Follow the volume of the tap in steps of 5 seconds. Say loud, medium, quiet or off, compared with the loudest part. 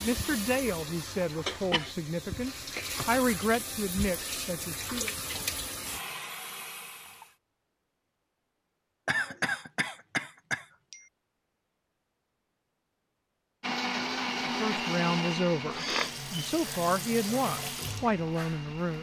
loud, loud, off, loud.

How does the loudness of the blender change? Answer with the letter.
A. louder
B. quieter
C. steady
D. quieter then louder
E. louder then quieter
B.